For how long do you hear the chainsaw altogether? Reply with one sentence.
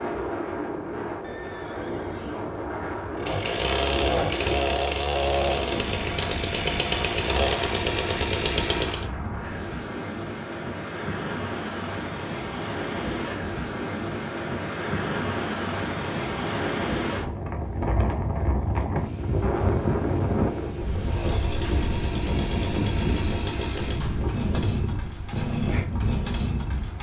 The chainsaw can be heard for 12 seconds in total.